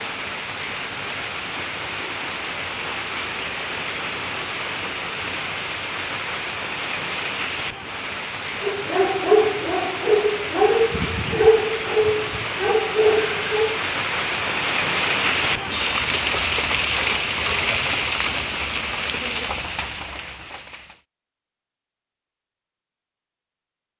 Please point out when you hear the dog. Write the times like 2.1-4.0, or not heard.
8.6-13.8.